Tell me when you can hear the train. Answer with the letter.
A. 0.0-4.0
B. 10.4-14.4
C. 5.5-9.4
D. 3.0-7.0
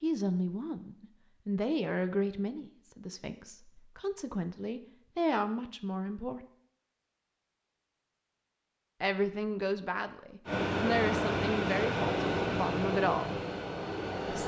B.